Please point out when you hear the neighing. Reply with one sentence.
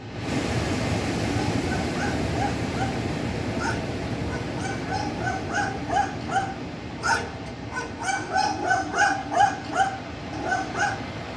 The neighing can't be heard in this clip.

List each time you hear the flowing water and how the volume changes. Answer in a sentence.
You can hear the flowing water from 0.0 to 11.3 s, getting quieter.